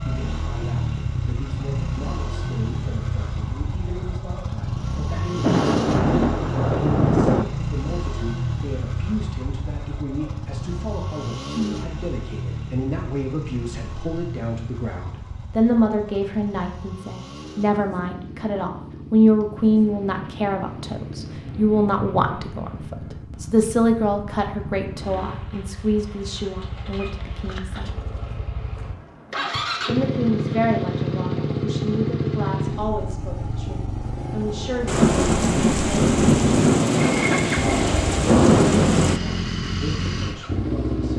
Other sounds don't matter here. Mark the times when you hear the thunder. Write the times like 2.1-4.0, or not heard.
5.4-7.5, 19.6-22.9, 34.9-39.2.